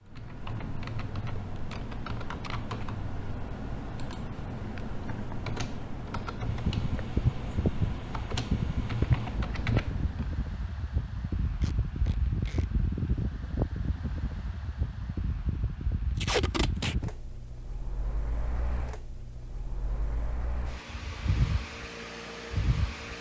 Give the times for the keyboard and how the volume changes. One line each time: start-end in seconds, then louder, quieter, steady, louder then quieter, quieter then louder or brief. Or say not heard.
0.0-10.4 steady.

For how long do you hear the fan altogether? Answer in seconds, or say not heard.
17 s.